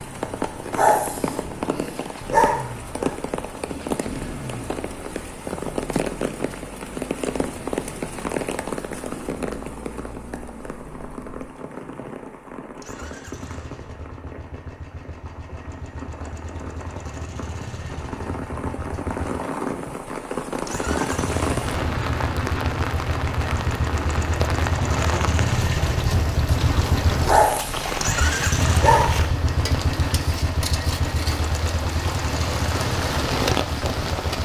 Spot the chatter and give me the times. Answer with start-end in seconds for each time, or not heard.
not heard.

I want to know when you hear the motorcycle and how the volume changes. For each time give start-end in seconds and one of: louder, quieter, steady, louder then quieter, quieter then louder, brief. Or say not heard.
0.0-34.4 louder.